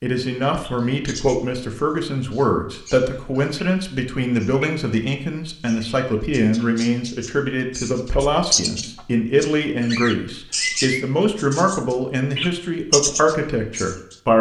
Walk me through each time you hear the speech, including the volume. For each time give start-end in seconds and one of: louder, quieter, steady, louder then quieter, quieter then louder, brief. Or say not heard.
0.0-14.3 steady.